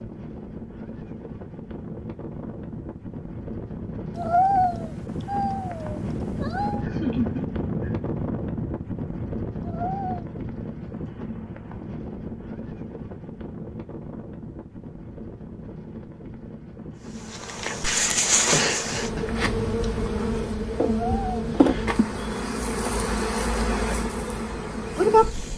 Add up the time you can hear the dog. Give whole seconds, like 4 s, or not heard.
not heard.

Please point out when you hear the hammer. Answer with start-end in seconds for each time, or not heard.
not heard.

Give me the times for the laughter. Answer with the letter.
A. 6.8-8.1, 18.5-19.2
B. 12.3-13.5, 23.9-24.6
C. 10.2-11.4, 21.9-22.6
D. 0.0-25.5
A.